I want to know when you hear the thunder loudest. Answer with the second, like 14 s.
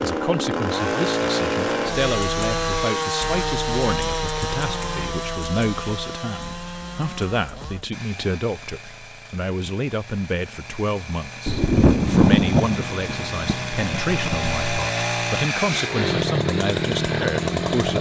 12 s.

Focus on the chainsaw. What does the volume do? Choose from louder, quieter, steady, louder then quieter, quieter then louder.
quieter then louder.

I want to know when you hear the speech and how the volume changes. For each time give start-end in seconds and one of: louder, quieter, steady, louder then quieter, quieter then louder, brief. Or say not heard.
0.0-17.9 steady.